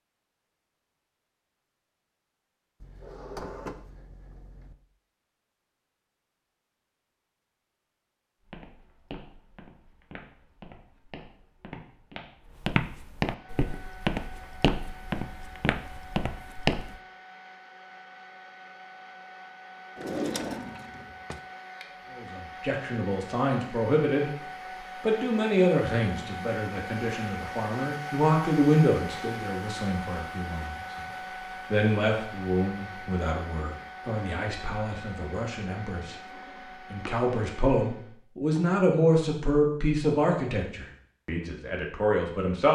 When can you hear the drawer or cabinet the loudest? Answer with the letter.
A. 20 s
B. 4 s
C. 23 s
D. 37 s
A.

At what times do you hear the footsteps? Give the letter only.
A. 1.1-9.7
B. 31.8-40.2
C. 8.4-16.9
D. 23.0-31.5
C.